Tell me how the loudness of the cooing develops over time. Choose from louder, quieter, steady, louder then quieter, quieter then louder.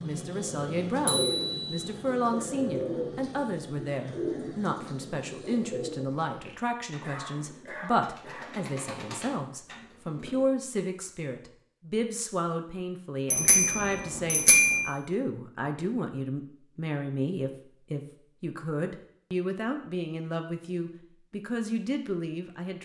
quieter then louder.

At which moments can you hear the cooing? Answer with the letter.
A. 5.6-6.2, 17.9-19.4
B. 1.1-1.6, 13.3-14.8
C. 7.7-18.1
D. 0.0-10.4
D.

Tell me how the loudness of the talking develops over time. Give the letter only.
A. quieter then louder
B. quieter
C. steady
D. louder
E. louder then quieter
C.